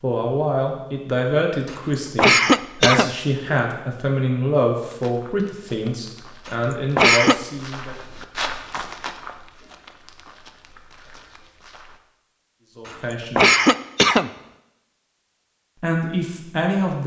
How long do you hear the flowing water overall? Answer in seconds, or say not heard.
not heard.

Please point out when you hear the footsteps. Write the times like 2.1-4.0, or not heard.
4.8-12.0.